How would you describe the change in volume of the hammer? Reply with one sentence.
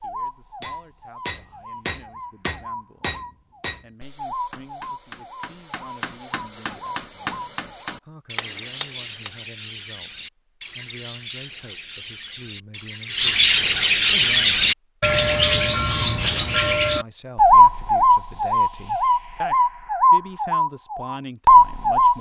The loudness of the hammer goes down, then up.